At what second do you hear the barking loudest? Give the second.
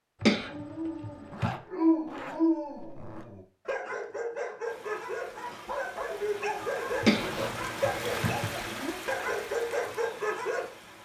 2 s.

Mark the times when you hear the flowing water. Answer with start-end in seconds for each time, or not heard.
4.6-10.9.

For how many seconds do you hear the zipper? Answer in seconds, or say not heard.
4 s.